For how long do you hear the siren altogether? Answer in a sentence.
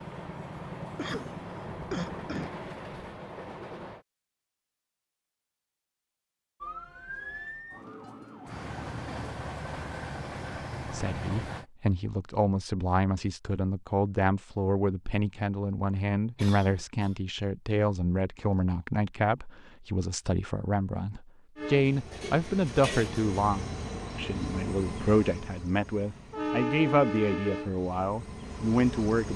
The siren can be heard for 3 seconds in total.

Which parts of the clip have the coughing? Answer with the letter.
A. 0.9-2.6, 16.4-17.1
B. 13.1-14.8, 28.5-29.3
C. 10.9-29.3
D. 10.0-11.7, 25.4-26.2
A.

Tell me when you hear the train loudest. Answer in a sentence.
The loudest moment of the train is at 27 seconds.